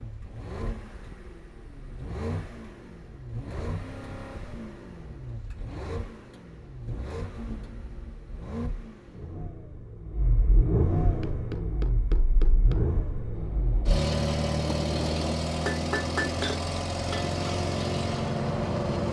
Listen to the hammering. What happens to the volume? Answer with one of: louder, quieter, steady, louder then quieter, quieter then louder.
louder.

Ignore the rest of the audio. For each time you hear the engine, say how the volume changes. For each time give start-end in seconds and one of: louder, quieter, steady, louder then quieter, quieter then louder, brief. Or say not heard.
0.0-19.0 louder.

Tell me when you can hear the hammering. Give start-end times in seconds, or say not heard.
11.2-17.4.